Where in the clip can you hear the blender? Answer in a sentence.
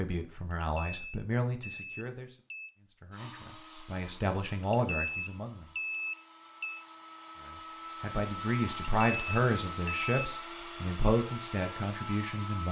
You can hear the blender from 3.1 to 12.6 s.